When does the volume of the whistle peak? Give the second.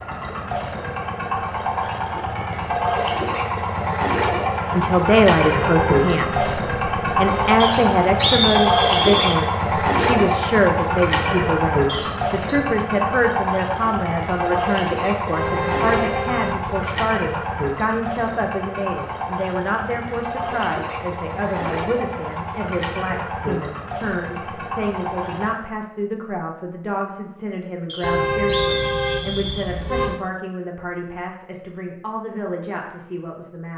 8 s.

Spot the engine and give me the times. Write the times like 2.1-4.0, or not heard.
0.0-25.5.